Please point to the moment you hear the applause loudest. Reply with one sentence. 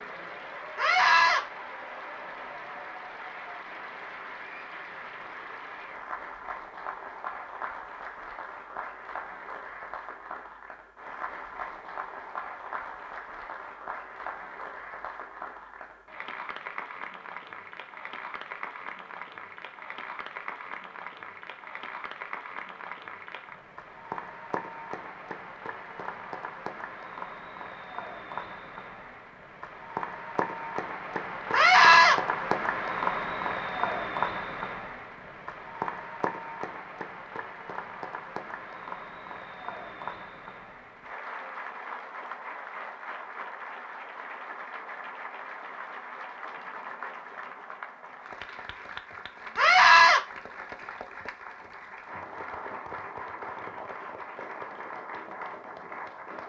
The volume of the applause peaks at 33 seconds.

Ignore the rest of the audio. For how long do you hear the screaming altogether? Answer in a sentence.
You can hear the screaming for 2 seconds altogether.